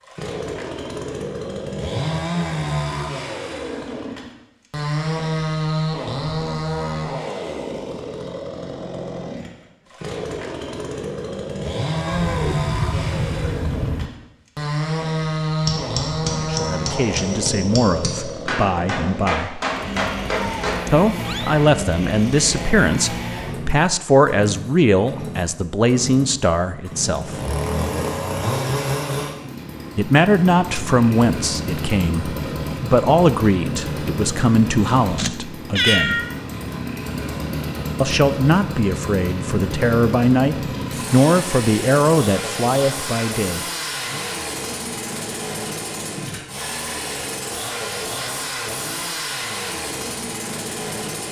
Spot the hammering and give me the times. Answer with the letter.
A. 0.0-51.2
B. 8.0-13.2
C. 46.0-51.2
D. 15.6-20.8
D.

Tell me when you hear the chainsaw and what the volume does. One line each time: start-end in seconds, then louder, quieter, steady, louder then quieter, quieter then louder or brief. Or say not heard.
0.0-51.2 steady.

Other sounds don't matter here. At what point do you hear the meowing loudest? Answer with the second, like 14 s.
36 s.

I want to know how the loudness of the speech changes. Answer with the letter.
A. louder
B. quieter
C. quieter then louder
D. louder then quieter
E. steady
E.